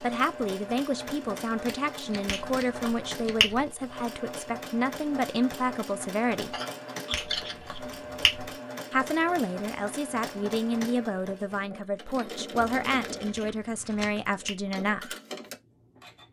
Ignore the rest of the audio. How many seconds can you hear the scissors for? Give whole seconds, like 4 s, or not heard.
5 s.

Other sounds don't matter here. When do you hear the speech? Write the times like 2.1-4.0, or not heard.
0.0-6.5, 8.9-15.2.